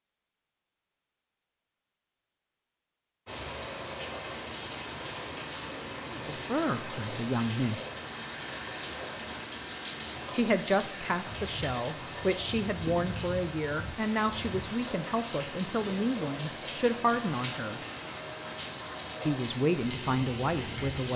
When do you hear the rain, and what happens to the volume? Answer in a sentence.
The rain can be heard from 3.2 to 21.1 s, at a steady volume.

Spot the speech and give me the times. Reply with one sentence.
You can hear the speech from 6.1 to 7.8 s, from 10.3 to 17.8 s and from 19.2 to 21.1 s.